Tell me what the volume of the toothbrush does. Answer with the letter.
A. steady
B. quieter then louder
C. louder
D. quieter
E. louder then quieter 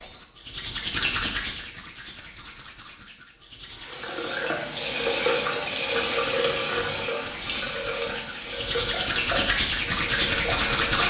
B.